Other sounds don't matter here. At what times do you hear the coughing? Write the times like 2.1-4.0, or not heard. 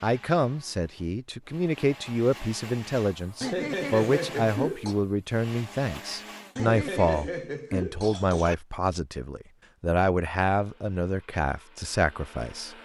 3.4-5.0, 6.5-8.6.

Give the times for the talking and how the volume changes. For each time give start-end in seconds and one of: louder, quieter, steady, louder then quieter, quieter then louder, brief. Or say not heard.
0.0-12.8 steady.